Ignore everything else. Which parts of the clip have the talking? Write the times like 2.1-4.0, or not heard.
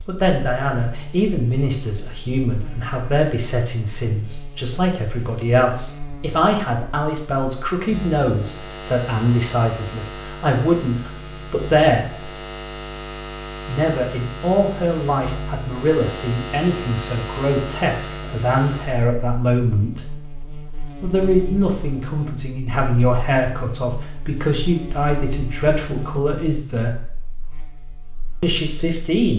0.0-12.2, 13.7-20.1, 21.0-27.1, 28.4-29.3.